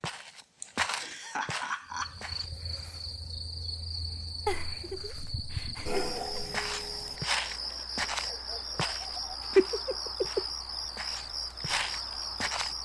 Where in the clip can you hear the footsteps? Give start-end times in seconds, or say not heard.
0.0-2.5, 6.5-12.7.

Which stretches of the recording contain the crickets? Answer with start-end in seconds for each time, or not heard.
1.9-12.7.